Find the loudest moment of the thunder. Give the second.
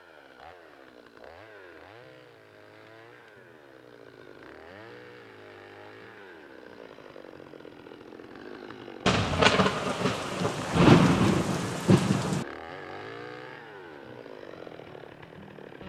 11 s.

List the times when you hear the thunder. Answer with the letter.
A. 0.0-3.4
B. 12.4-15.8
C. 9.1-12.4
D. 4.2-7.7
C.